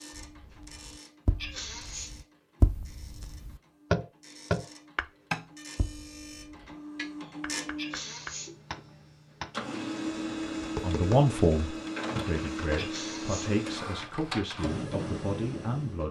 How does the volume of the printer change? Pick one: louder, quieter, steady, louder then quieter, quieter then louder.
louder.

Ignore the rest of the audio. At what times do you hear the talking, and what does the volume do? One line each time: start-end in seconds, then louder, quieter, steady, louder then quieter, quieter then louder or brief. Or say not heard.
10.8-16.0 quieter.